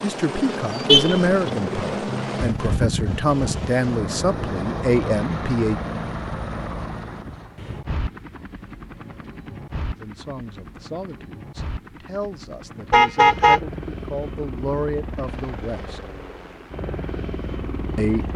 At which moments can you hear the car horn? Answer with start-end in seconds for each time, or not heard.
0.8-1.3, 12.9-13.6.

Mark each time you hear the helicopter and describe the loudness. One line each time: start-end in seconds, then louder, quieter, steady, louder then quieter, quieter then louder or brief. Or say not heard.
0.0-18.3 quieter.